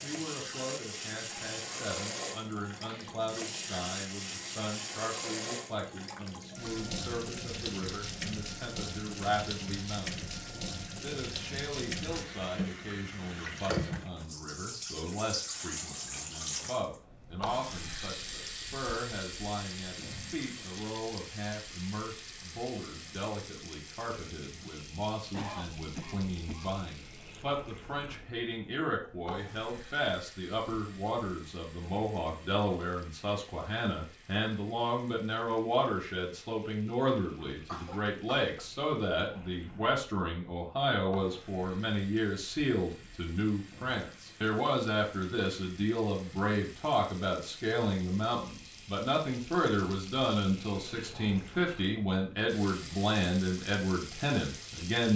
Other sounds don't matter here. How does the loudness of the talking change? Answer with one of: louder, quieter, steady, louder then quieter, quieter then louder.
louder.